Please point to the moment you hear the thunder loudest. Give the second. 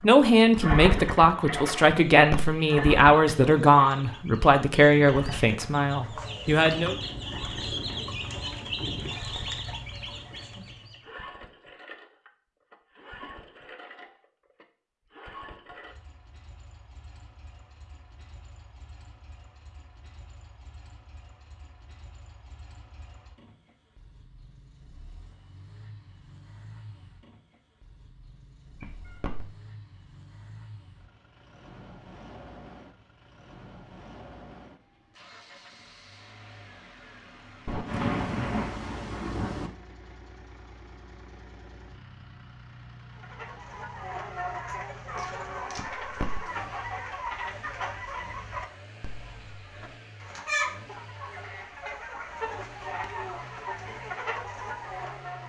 38 s.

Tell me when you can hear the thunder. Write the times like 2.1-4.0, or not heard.
6.5-9.2, 37.6-39.7.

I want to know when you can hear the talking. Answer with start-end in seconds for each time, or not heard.
0.0-7.0.